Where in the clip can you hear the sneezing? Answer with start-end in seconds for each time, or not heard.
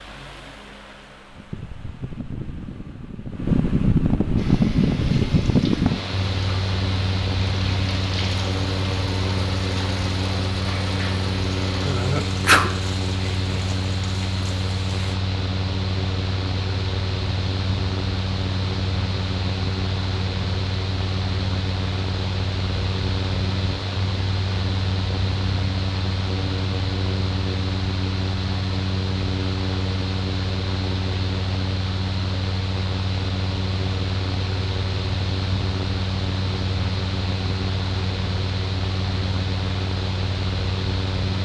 11.8-12.7.